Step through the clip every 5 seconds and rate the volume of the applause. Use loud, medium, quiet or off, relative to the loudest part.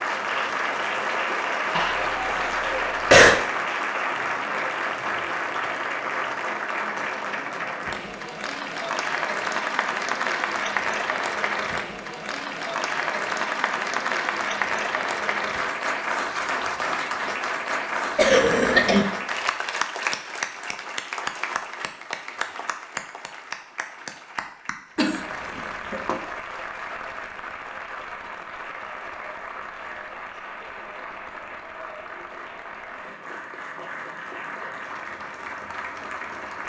loud, loud, loud, loud, medium, medium, medium, medium.